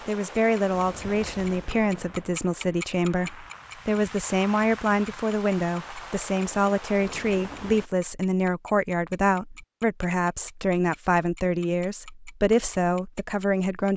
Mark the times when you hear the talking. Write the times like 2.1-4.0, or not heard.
0.1-13.9.